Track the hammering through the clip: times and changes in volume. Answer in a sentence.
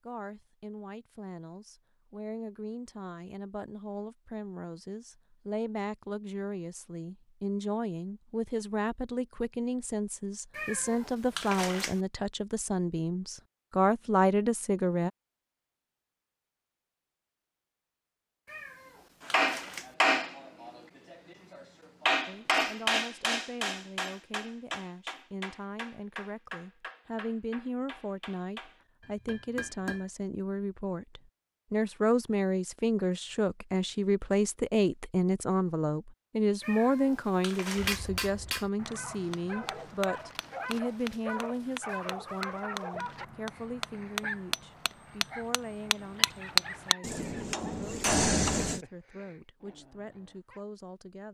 You can hear the hammering from 19.2 to 30.1 s, getting quieter; and from 37.8 to 48.8 s, getting louder.